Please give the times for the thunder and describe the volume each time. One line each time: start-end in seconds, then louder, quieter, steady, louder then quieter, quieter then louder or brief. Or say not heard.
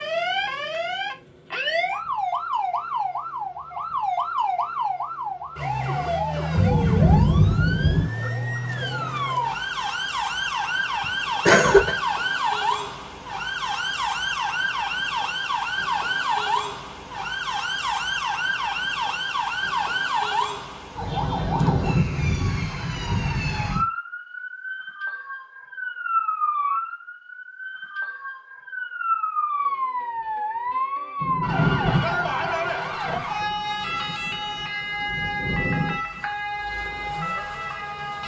6.5-8.1 brief
21.2-23.6 brief
31.2-36.0 quieter then louder.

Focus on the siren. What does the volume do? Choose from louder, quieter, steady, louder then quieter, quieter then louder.
steady.